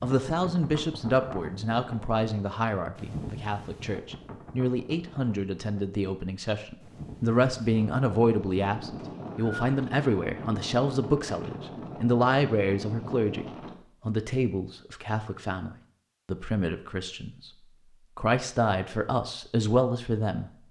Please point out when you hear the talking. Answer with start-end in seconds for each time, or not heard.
0.0-13.4, 14.1-17.5, 18.1-20.5.